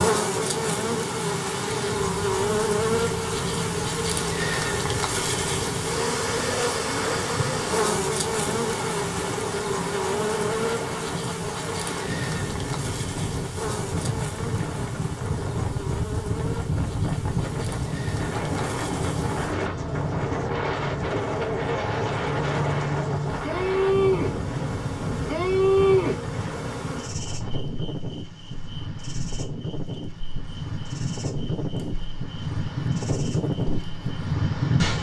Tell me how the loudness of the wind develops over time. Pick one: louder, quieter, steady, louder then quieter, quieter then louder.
louder.